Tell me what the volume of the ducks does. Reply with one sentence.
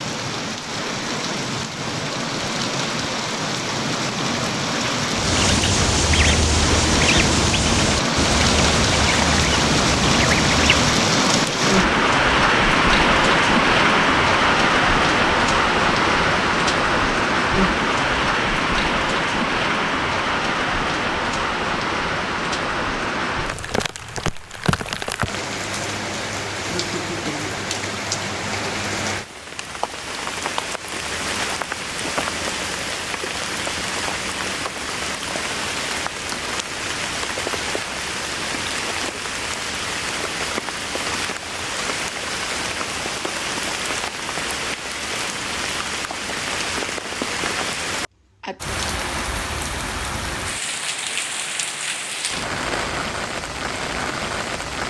The loudness of the ducks stays about the same.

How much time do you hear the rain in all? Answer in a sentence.
The rain can be heard for 55 seconds in total.